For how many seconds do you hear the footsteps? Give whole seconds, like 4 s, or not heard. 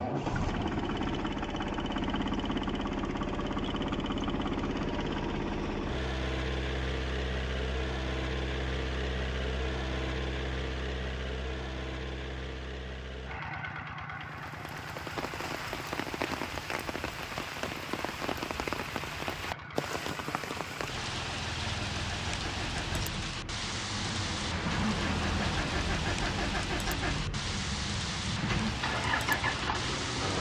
not heard.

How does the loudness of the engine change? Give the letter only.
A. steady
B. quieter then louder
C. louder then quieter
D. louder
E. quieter
B.